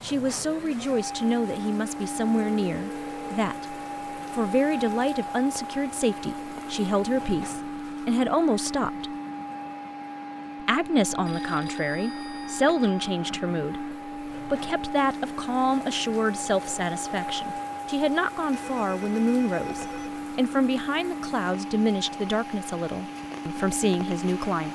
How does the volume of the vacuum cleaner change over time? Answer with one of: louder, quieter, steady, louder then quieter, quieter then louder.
steady.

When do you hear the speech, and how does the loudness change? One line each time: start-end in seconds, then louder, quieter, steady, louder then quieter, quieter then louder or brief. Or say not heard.
0.0-9.2 steady
10.6-24.6 steady.